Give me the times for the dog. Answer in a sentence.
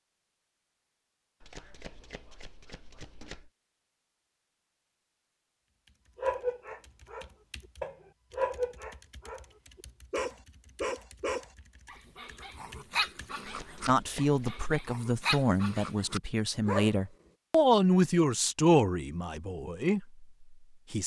The dog can be heard from 6.2 to 9.4 s and from 10.1 to 17.0 s.